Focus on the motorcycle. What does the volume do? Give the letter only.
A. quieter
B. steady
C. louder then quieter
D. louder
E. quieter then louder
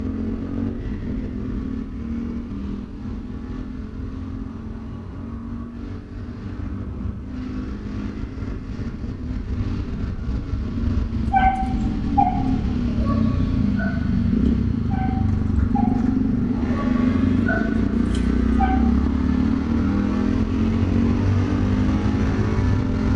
D.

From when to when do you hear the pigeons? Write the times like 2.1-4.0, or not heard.
not heard.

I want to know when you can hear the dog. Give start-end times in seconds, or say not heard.
11.3-18.8.